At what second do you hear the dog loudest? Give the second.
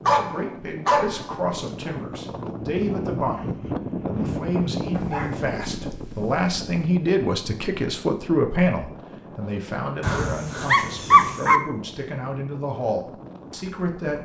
11 s.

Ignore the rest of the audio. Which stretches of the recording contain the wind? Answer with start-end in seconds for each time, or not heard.
0.0-14.1.